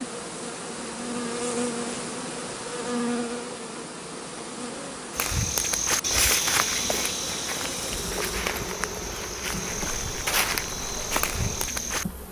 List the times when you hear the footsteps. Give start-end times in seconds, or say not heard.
5.1-12.2.